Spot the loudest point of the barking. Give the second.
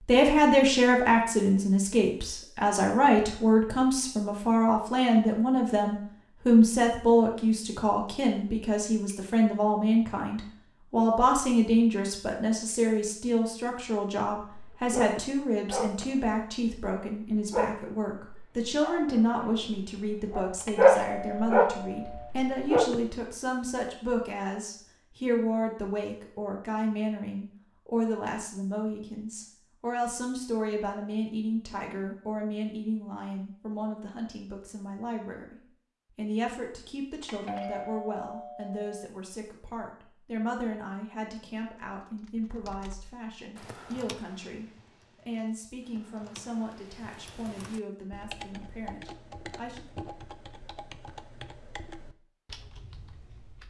21 s.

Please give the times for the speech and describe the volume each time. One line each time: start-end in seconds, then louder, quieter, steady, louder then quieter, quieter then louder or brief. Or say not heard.
0.1-49.9 quieter.